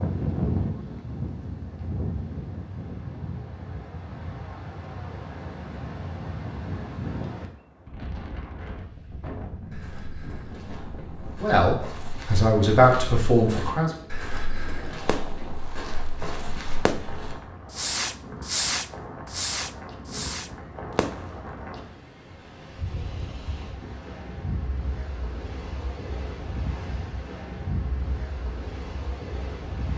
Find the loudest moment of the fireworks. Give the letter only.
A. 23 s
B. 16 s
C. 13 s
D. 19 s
D.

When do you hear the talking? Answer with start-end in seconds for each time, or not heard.
11.4-13.9.